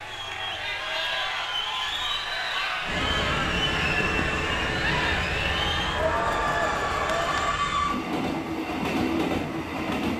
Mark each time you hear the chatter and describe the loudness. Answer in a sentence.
The chatter can be heard from 0.0 to 7.5 s, at a steady volume.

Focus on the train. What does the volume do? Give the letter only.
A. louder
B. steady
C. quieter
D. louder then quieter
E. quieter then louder
B.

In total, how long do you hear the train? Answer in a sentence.
You can hear the train for 7 seconds altogether.